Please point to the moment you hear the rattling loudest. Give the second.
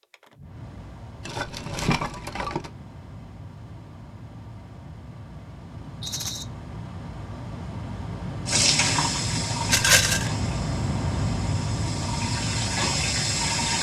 10 s.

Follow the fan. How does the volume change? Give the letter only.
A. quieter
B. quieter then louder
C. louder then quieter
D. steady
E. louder
E.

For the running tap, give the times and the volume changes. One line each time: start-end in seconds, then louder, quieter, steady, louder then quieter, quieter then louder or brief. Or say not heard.
8.4-13.7 quieter then louder.